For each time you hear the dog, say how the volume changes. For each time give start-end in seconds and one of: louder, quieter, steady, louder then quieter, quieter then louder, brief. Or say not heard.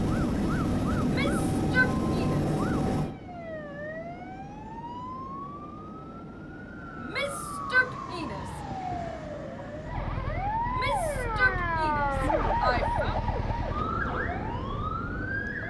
not heard.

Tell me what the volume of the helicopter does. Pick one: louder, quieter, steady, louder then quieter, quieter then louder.
quieter.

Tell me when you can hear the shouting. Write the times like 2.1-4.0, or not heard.
1.0-2.5, 7.0-8.6, 10.7-13.2.